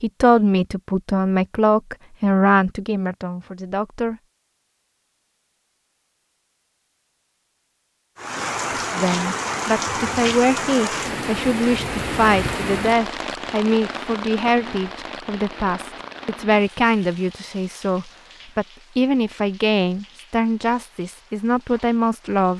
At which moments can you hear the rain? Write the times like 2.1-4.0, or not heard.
8.2-22.5.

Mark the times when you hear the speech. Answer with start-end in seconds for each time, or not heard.
0.0-4.2, 8.9-22.5.